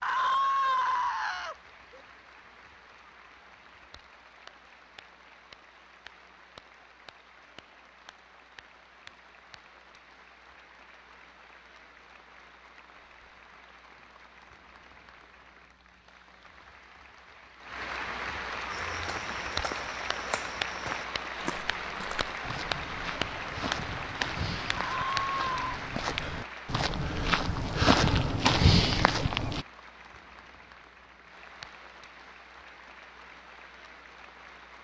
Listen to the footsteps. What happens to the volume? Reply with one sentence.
The loudness of the footsteps goes up.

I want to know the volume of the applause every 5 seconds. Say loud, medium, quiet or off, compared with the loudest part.
quiet, quiet, quiet, loud, loud, loud, quiet.